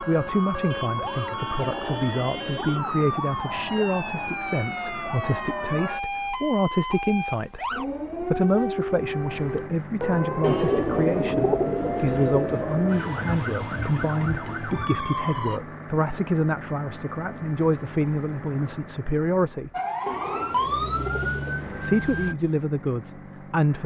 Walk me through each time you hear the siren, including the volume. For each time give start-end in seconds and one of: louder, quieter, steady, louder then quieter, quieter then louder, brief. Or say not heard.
0.0-15.6 steady
19.7-22.4 brief.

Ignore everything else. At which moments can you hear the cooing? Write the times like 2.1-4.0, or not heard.
1.6-3.0, 10.4-13.0, 20.1-21.9.